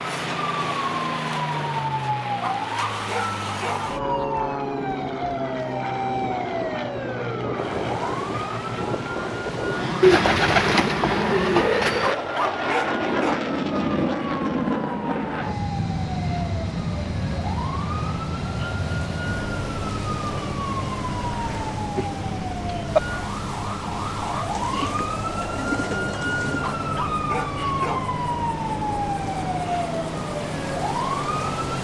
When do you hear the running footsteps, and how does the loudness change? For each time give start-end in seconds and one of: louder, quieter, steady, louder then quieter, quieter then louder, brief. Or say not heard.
not heard.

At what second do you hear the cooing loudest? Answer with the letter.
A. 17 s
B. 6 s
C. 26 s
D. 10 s
D.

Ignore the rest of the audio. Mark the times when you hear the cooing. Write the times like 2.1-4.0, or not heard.
10.0-12.2, 24.5-26.7.